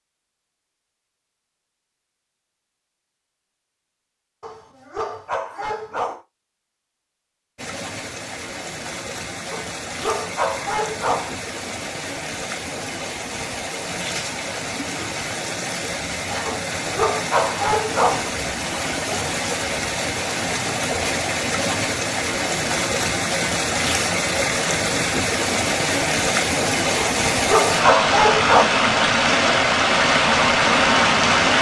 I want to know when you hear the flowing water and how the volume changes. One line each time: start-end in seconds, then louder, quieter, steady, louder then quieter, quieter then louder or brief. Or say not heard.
7.5-31.5 louder.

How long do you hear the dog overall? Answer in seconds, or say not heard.
7 s.